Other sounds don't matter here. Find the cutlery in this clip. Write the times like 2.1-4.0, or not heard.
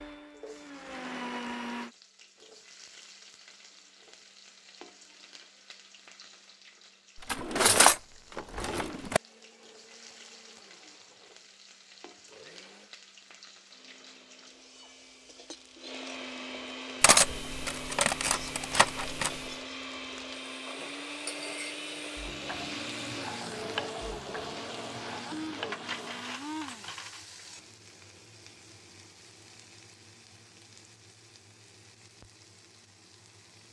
7.3-9.2, 17.0-19.4, 25.7-27.2.